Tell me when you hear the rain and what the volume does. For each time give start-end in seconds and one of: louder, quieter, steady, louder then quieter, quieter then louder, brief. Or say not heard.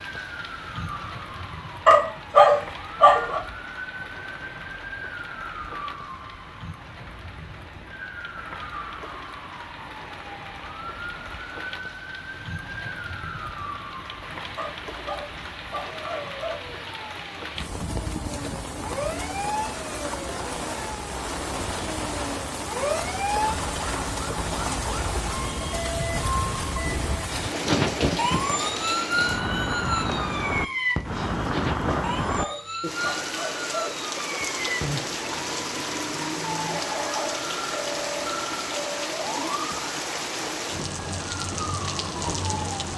0.0-42.9 louder.